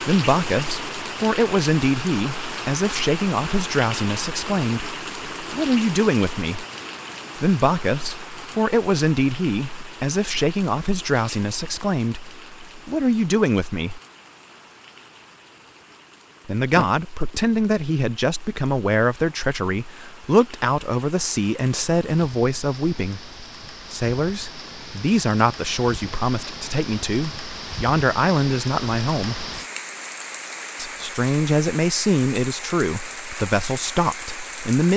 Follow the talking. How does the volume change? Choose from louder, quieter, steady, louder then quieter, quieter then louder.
steady.